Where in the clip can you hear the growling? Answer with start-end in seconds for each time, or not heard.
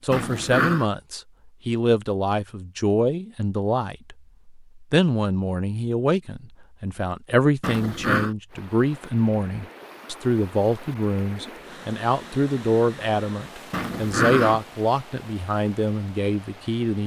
0.1-0.8, 7.6-8.3, 13.7-14.6.